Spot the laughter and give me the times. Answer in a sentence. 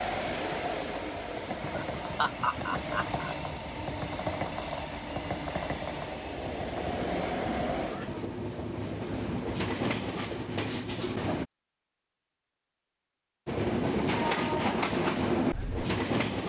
You can hear the laughter from 1.8 to 3.4 s.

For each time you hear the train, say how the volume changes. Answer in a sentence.
You can hear the train from 0.0 to 11.4 s, at a steady volume; and briefly from 13.4 to 16.4 s.